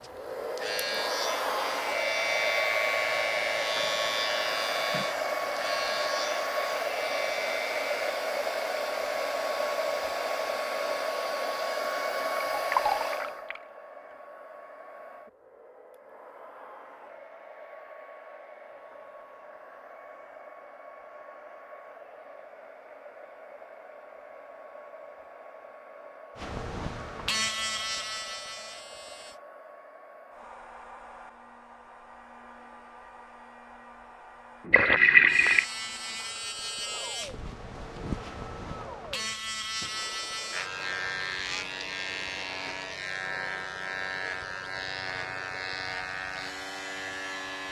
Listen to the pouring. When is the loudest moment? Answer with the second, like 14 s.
35 s.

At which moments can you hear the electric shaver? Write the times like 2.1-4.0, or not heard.
0.0-8.2, 26.4-29.4, 35.2-47.6.